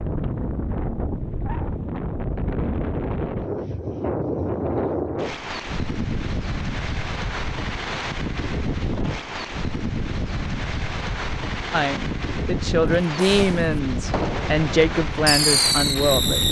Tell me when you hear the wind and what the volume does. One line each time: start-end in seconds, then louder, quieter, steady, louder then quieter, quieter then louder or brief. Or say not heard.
0.0-16.4 steady.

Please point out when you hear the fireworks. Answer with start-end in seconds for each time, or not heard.
13.0-16.4.